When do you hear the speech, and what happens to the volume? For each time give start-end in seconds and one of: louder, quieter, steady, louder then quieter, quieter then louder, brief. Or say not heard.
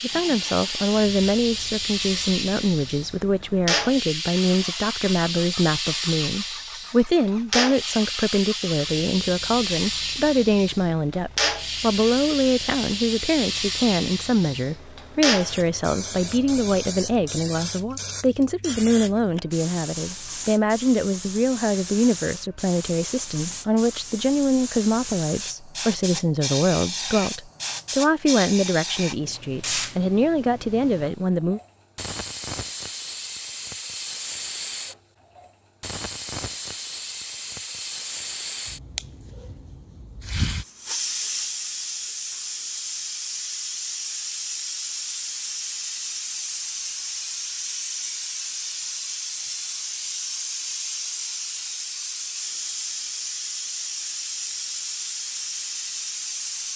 0.0-31.6 steady.